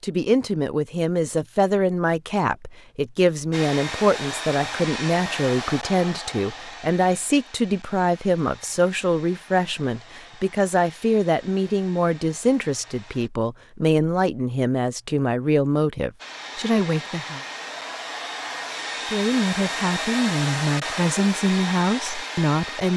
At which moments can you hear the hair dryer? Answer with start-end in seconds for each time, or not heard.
3.5-13.3, 16.1-22.9.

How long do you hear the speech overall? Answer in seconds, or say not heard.
21 s.